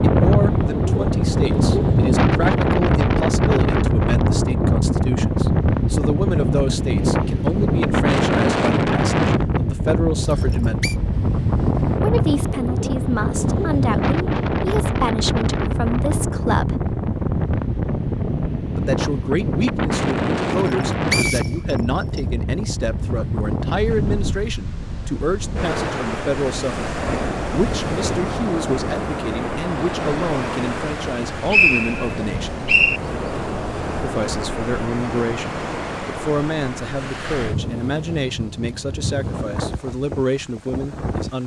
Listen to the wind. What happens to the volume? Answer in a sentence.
The volume of the wind goes down.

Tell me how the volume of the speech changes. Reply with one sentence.
The loudness of the speech stays about the same.